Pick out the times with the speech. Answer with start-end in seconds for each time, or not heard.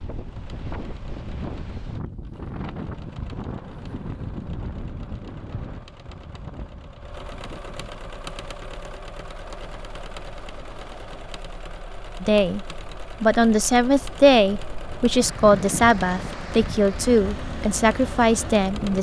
12.2-18.9.